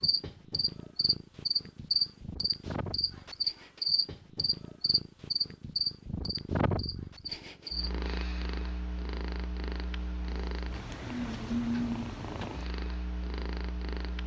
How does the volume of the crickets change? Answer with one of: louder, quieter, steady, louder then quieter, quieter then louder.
quieter.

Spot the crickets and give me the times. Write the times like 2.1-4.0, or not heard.
0.0-7.9.